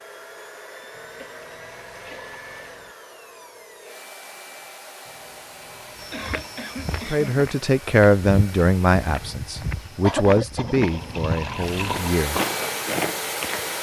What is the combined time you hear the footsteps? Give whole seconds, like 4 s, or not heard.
8 s.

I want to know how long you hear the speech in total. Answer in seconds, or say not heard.
5 s.